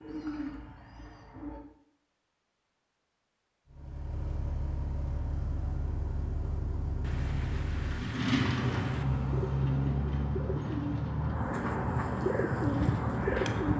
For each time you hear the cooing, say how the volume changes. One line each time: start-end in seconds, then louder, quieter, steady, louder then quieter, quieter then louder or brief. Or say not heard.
0.0-1.6 brief
8.6-13.7 louder.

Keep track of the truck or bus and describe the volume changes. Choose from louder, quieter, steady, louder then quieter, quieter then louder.
louder then quieter.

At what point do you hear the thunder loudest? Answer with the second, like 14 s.
9 s.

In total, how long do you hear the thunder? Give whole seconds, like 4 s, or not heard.
2 s.